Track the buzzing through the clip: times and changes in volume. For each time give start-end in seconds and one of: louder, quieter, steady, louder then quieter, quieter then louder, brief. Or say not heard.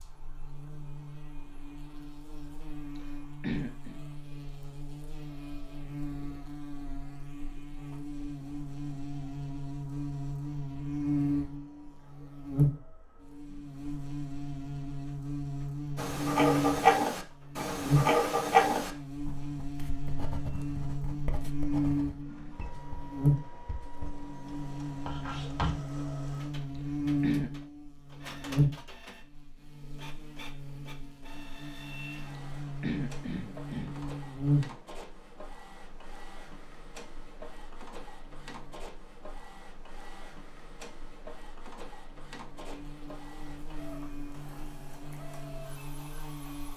0.0-46.7 louder then quieter.